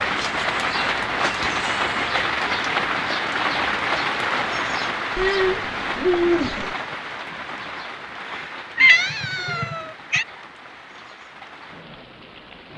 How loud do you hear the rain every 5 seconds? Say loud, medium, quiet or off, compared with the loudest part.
loud, medium, quiet.